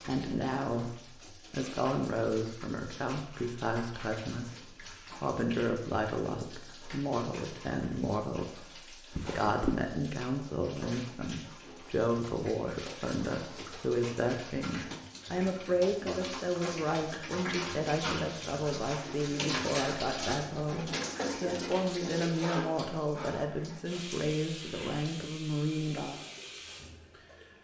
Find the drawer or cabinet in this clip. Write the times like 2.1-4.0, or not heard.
9.1-9.8, 21.0-22.0.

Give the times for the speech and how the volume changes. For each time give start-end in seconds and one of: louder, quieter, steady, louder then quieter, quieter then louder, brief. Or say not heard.
0.1-26.2 steady.